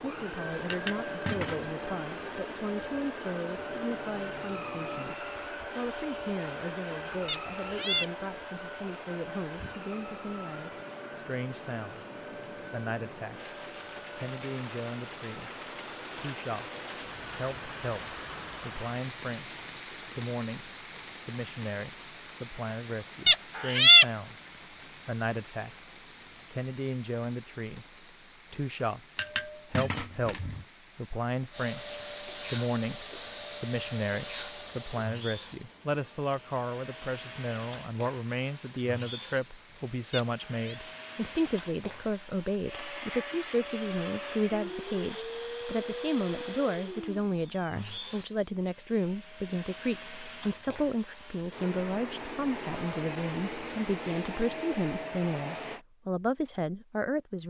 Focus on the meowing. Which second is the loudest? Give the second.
24 s.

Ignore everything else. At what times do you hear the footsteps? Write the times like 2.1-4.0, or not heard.
not heard.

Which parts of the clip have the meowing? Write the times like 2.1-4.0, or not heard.
7.2-8.1, 23.2-24.1, 40.1-40.8.